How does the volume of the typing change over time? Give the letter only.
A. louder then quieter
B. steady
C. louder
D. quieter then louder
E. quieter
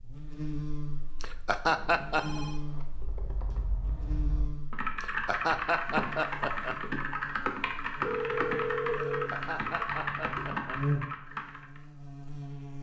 C.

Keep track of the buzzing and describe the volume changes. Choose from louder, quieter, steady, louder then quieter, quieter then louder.
quieter then louder.